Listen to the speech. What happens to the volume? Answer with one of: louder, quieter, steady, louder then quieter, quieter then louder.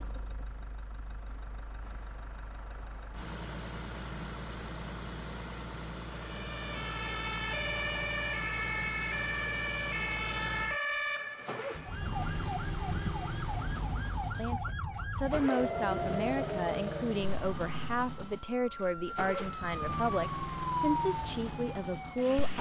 steady.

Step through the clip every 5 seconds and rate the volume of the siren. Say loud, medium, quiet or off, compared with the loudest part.
off, loud, loud, loud, loud.